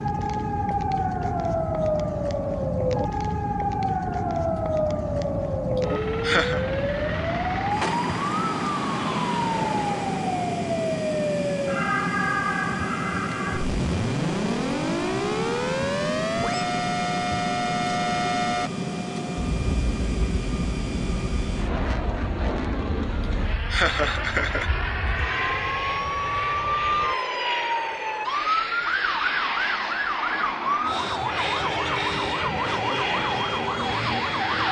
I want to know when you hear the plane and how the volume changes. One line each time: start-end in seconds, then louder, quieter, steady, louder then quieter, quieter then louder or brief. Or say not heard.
0.0-34.6 steady.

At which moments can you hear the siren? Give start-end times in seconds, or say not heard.
0.0-34.6.